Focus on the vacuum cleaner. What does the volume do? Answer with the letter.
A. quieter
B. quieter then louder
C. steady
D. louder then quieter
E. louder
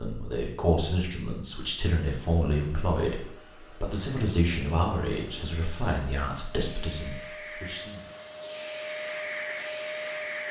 E.